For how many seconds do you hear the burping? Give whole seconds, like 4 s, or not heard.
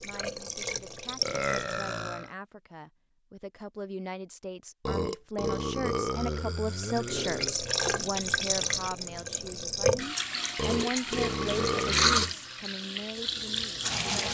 6 s.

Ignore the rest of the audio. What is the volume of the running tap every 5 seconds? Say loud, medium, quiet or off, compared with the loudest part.
medium, loud, loud.